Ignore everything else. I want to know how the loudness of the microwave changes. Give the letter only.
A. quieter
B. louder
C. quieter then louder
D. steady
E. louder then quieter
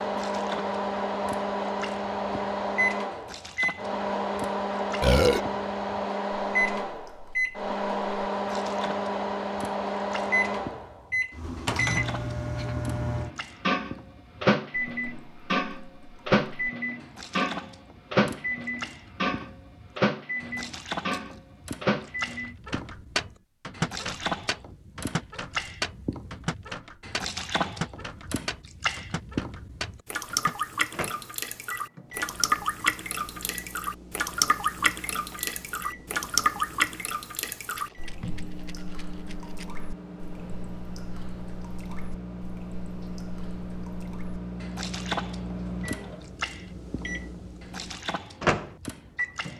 C.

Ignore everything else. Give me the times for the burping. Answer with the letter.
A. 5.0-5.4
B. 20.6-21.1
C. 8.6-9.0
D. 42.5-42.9
A.